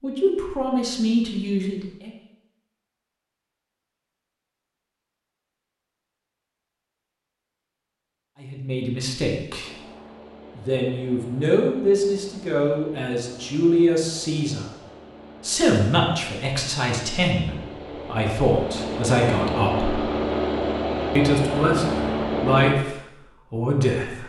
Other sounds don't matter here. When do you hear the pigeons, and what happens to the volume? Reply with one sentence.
You can't hear the pigeons here.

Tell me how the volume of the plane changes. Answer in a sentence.
The volume of the plane goes up.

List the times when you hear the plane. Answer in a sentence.
You can hear the plane from 9.7 to 22.8 s.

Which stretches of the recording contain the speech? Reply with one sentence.
You can hear the speech from 0.0 to 2.1 s, from 8.4 to 9.7 s, from 10.6 to 14.7 s, from 15.4 to 19.9 s and from 21.1 to 24.2 s.